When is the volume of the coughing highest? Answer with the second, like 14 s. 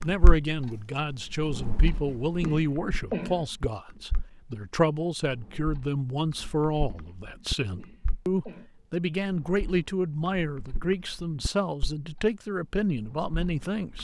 3 s.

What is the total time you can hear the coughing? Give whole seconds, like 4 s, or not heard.
2 s.